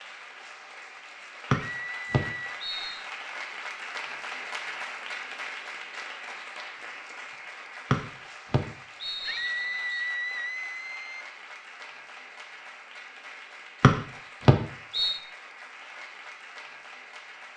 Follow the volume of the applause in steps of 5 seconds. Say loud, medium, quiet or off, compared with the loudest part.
loud, loud, medium, medium.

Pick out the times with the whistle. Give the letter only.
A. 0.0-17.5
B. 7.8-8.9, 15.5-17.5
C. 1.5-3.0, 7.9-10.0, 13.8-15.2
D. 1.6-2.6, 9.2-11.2
C.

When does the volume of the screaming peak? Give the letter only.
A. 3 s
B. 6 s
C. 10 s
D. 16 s
C.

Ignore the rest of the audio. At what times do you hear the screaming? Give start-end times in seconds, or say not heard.
1.6-2.6, 9.2-11.2.